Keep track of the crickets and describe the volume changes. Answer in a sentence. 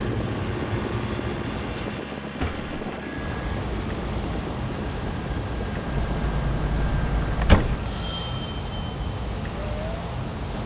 The volume of the crickets stays about the same.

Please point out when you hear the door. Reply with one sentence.
You can hear the door from 2.4 to 3.0 s and from 5.8 to 7.8 s.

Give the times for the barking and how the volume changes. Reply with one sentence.
The barking can't be heard in this clip.